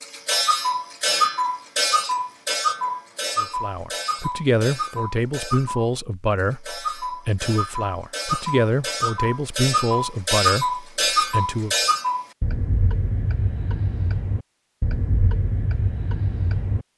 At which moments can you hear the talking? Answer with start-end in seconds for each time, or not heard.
3.4-11.8.